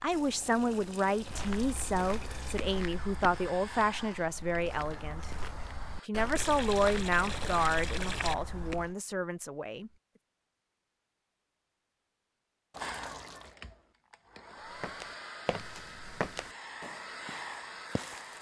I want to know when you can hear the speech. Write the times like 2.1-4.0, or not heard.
0.0-5.3, 6.0-9.9.